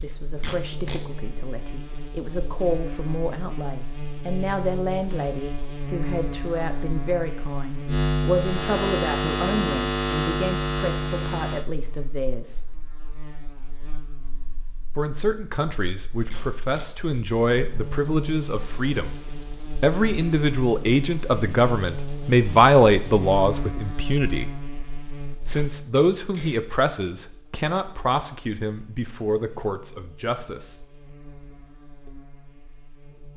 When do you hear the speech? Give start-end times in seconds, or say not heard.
0.0-12.7, 14.9-24.5, 25.4-30.8.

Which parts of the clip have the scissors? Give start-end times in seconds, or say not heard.
not heard.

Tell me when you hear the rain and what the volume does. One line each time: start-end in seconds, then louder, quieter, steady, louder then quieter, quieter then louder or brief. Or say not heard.
not heard.